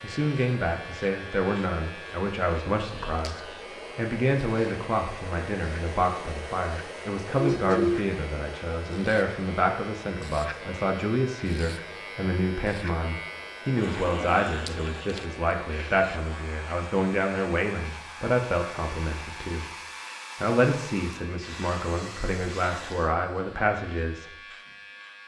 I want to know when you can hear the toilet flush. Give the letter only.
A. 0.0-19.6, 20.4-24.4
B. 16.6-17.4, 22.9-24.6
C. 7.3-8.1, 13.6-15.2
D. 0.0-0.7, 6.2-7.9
C.